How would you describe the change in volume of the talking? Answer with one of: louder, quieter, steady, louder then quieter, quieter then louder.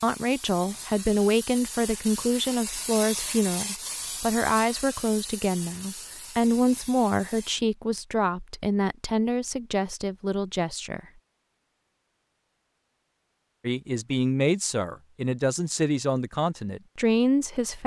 steady.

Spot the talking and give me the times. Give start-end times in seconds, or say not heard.
0.0-11.0, 13.6-17.8.